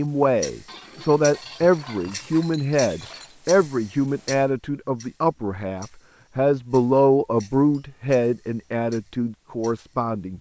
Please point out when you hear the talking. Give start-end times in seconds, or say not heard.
0.0-10.3.